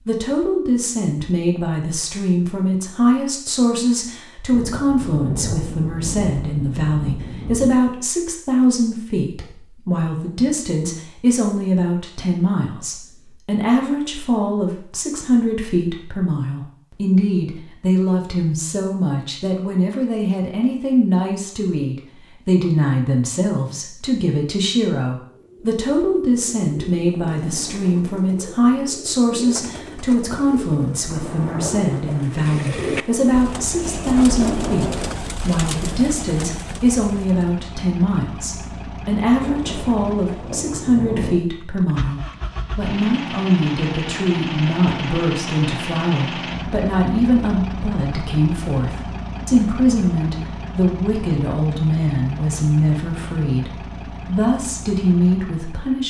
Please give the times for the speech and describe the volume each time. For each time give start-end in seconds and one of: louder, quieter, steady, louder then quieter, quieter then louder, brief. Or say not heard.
0.1-56.0 steady.